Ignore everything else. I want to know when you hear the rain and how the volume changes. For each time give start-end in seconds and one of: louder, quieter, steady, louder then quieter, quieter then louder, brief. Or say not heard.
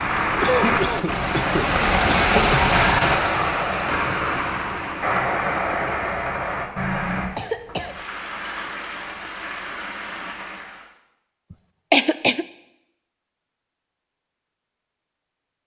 0.0-10.9 quieter.